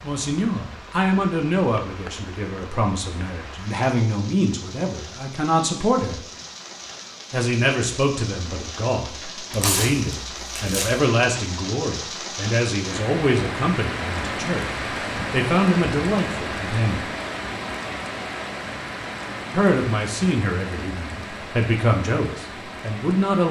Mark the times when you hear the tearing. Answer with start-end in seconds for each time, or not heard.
9.5-11.0.